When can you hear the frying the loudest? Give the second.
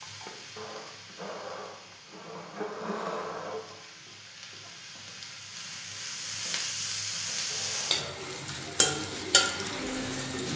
9 s.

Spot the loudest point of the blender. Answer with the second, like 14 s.
3 s.